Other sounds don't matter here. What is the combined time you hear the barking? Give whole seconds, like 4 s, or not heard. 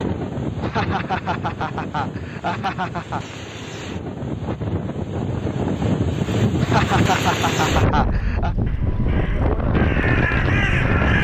not heard.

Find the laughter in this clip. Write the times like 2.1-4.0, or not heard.
0.6-3.2, 6.6-8.6.